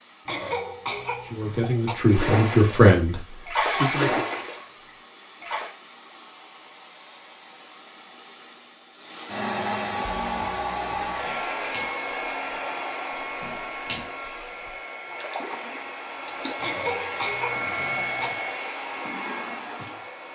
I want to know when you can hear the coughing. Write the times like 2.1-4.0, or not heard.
0.2-1.9, 16.6-18.3.